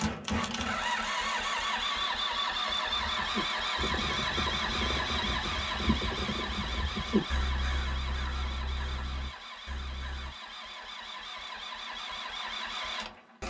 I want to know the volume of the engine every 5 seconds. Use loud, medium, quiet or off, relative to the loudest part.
loud, medium, medium.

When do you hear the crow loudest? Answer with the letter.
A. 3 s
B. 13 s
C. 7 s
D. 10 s
C.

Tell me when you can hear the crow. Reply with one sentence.
You can hear the crow from 2.9 to 10.3 s.